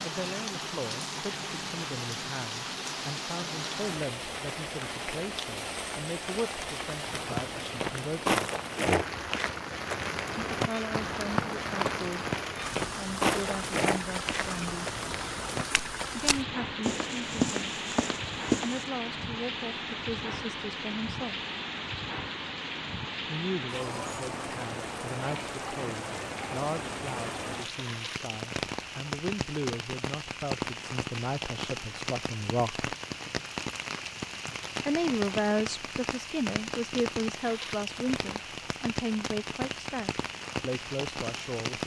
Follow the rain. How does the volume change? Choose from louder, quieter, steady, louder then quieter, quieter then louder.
steady.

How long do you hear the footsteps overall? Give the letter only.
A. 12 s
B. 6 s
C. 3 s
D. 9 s
A.